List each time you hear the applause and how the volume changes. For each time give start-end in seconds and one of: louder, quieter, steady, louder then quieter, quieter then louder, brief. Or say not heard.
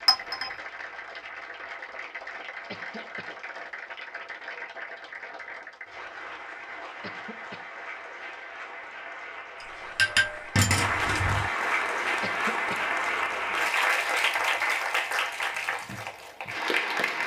0.0-17.2 louder.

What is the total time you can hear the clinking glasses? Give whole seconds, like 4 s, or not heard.
2 s.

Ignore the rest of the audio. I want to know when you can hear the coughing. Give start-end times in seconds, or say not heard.
2.6-3.4, 7.0-7.7, 12.2-12.8.